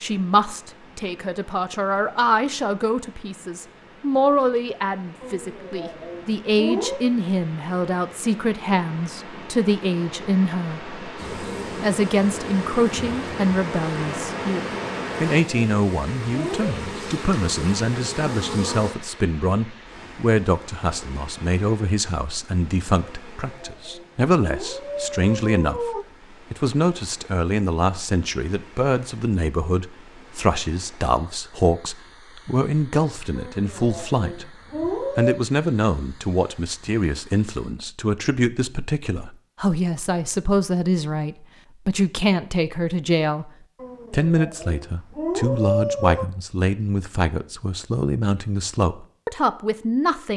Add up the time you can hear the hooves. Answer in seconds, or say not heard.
not heard.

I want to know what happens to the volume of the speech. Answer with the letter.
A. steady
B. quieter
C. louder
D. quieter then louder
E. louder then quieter
A.